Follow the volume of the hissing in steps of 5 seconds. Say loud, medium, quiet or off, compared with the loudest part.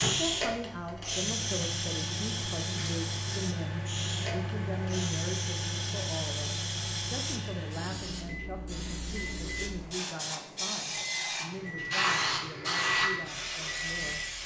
loud, medium, loud.